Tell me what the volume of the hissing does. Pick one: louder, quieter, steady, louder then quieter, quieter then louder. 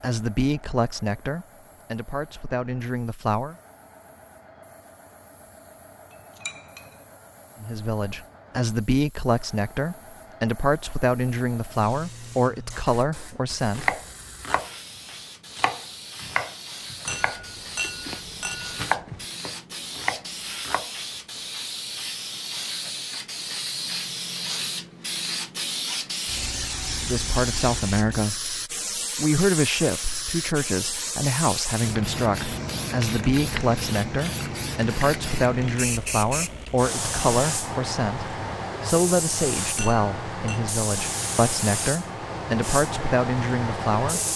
louder.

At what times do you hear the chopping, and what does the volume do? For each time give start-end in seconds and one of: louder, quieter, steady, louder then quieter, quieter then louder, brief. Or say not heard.
13.8-14.7 brief
15.6-20.9 quieter then louder.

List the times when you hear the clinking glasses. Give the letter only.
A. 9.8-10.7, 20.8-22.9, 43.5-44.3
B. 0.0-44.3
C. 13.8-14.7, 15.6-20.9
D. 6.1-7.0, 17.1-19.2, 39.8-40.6
D.